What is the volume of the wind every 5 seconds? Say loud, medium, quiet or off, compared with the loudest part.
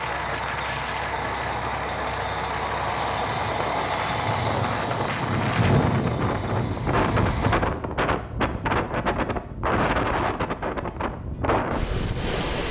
medium, loud, loud.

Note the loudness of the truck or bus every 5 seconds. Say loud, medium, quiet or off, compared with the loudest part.
loud, loud, off.